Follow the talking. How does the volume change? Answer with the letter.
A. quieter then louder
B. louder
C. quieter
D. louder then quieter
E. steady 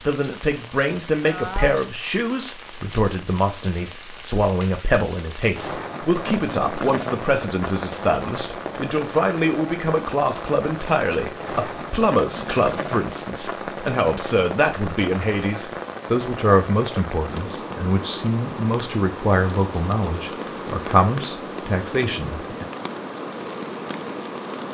E.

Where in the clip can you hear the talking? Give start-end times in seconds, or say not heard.
0.1-22.6.